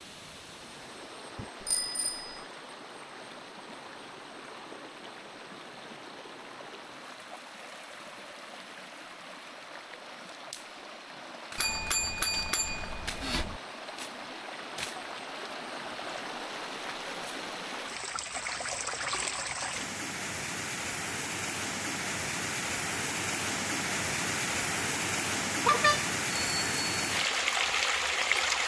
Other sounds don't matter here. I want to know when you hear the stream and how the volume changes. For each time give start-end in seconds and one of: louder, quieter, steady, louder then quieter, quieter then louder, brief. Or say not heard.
0.0-28.6 louder.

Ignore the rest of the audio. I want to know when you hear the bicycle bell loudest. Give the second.
26 s.